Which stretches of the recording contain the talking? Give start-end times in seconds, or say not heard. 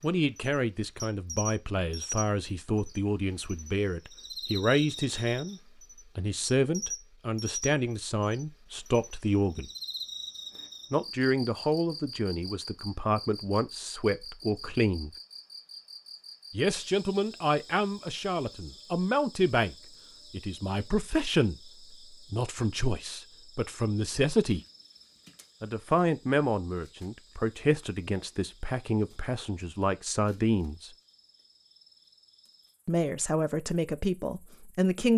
0.0-9.7, 10.9-15.1, 16.5-24.6, 25.6-30.9, 32.9-35.1.